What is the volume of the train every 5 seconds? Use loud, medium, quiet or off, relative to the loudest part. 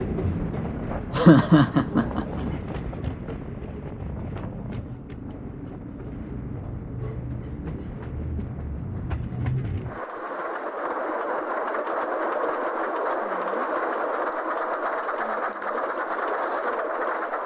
medium, medium, loud, loud.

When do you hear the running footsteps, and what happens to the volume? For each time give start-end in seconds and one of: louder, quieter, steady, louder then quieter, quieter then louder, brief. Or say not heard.
not heard.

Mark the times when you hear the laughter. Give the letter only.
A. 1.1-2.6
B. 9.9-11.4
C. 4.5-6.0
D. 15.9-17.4
A.